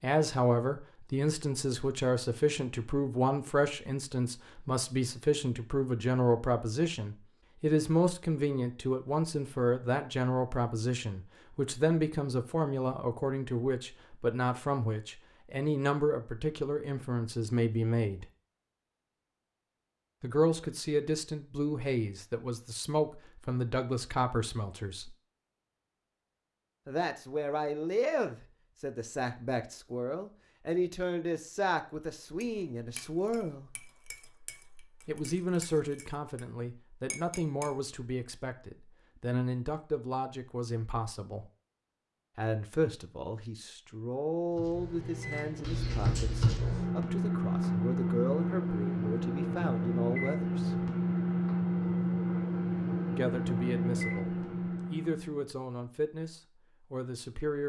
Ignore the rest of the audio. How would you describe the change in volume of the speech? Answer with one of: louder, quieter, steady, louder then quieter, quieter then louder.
quieter.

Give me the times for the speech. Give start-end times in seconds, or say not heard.
0.0-18.2, 20.2-25.1, 26.9-33.7, 35.0-41.5, 42.4-50.9, 53.1-57.6.